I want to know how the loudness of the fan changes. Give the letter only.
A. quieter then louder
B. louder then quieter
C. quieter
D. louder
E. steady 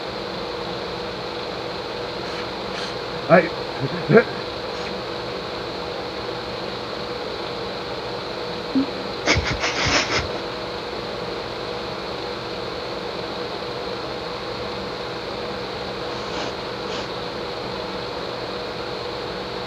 E.